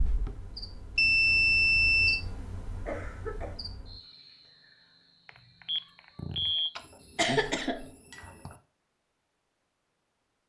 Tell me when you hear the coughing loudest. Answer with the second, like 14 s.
7 s.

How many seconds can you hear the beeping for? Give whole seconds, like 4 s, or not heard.
3 s.